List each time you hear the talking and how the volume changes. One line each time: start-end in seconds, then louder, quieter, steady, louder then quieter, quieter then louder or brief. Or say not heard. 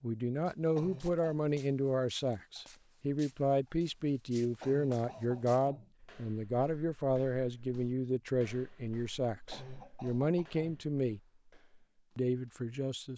0.0-11.2 steady
12.2-13.1 brief.